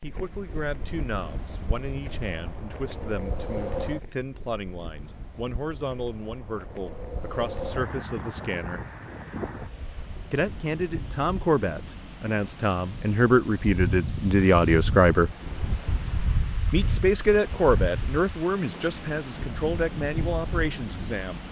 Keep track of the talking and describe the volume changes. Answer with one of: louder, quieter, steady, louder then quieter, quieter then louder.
louder then quieter.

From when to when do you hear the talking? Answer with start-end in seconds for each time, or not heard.
0.0-8.8, 10.3-15.3, 16.7-21.4.